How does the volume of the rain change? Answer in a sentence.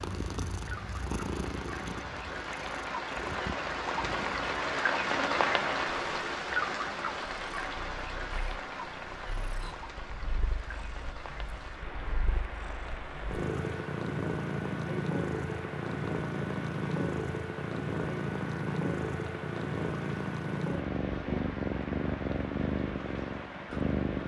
The volume of the rain goes down.